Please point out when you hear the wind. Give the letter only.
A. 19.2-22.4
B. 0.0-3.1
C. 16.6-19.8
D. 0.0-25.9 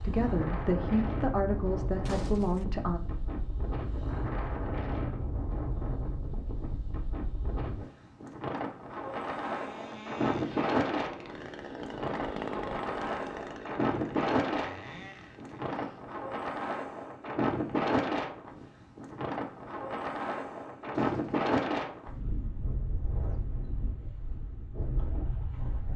D.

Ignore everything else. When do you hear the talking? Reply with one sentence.
The talking can be heard from 0.0 to 3.1 s.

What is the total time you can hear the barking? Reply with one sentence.
The barking can't be heard in this clip.